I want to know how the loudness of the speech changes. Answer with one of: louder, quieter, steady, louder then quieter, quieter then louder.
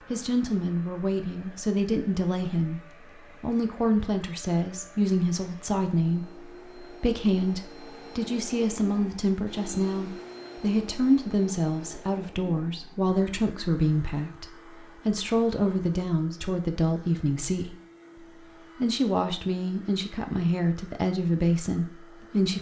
steady.